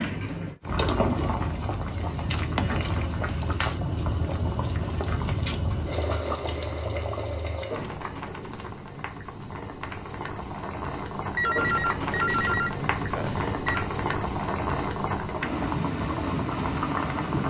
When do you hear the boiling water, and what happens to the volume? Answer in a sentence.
You can hear the boiling water from 0.0 to 17.4 s, getting quieter then louder.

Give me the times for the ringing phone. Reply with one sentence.
The ringing phone can be heard from 11.3 to 13.9 s.